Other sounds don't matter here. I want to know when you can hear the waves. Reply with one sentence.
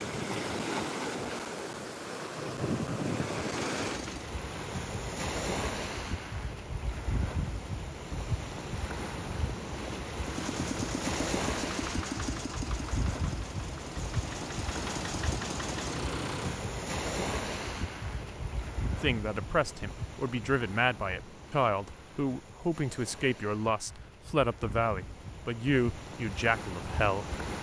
The waves can be heard from 0.0 to 27.5 s.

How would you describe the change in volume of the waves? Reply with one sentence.
The loudness of the waves goes down.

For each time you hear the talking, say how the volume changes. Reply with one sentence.
You can hear the talking from 19.0 to 27.3 s, at a steady volume.